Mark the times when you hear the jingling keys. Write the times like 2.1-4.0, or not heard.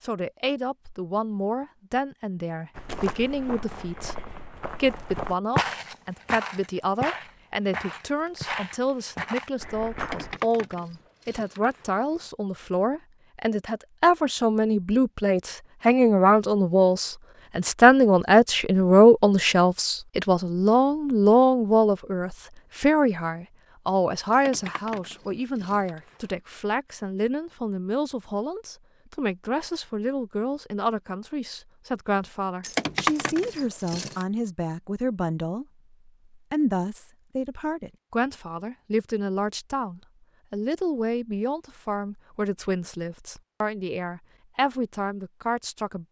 9.9-12.3, 24.3-26.3, 32.6-34.2.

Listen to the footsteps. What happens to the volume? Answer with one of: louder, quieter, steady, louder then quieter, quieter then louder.
louder then quieter.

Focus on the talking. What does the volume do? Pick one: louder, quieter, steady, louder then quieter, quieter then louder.
louder then quieter.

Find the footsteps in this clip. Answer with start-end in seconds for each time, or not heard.
2.8-10.4.